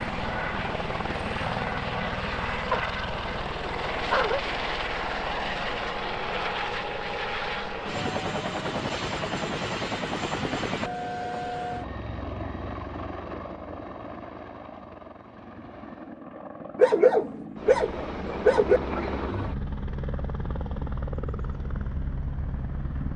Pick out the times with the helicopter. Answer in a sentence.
You can hear the helicopter from 0.0 to 23.1 s.